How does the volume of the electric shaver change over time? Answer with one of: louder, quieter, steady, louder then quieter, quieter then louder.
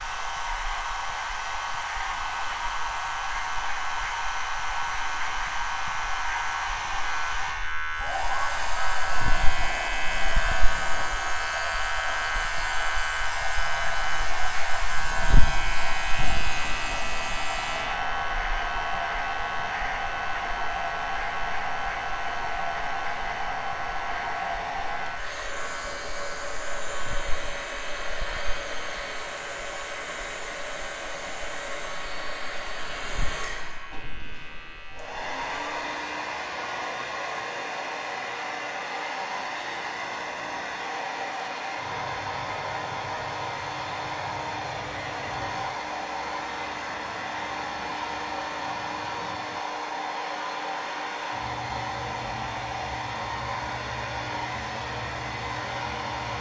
quieter.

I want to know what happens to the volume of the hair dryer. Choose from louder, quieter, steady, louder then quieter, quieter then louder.
steady.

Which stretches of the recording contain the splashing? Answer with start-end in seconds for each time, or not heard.
not heard.